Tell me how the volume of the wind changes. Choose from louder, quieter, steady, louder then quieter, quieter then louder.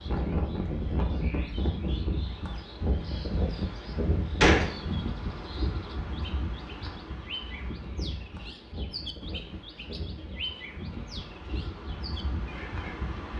quieter.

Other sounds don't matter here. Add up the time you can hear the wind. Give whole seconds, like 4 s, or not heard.
13 s.